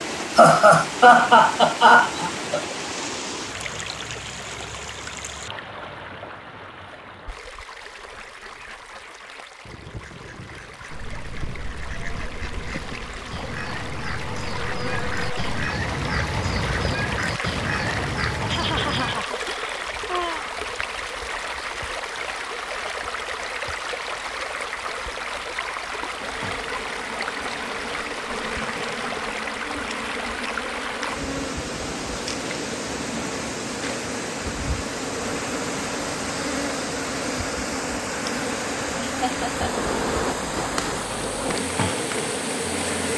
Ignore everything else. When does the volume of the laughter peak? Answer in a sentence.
The loudest moment of the laughter is at 1 second.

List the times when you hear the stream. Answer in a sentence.
The stream can be heard from 0.0 to 43.1 s.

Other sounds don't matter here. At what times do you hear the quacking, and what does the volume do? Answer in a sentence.
You can hear the quacking from 7.9 to 19.2 s, getting louder.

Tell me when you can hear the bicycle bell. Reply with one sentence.
You can't hear the bicycle bell here.